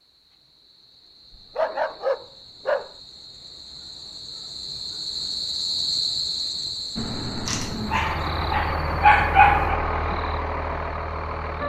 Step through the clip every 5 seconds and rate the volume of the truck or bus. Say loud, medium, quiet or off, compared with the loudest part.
off, loud, loud.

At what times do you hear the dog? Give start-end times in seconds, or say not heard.
1.6-2.9, 7.5-9.8.